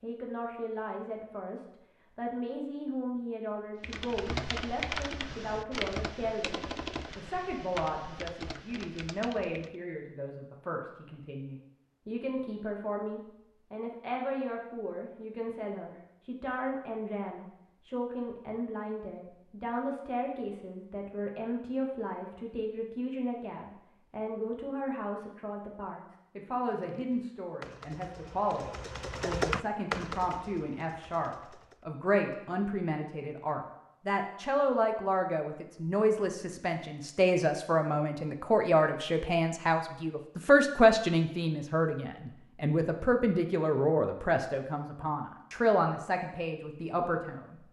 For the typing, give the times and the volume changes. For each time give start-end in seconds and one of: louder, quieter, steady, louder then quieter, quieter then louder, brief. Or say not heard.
3.8-9.8 quieter
26.9-31.9 louder then quieter.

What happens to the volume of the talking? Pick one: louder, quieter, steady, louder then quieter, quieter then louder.
louder.